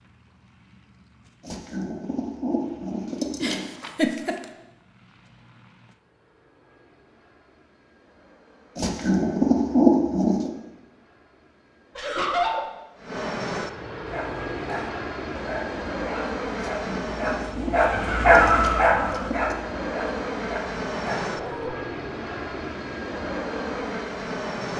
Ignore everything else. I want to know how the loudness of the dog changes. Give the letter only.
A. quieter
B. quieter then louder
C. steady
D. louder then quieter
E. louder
D.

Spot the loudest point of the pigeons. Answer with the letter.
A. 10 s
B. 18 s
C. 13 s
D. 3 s
A.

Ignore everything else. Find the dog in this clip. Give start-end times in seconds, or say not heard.
14.1-21.8.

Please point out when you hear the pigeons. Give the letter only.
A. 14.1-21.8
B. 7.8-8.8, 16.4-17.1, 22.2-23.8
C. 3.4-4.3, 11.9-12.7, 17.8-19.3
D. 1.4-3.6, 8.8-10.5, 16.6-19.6
D.